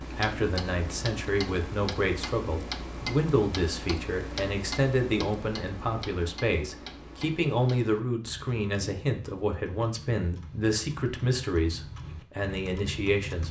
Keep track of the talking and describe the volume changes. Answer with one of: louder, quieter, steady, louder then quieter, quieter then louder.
steady.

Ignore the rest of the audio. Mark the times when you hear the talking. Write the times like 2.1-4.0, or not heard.
0.0-13.4.